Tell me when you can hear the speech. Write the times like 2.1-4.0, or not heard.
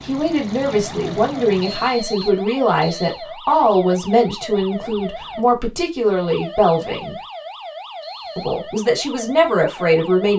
0.0-7.2, 8.3-10.3.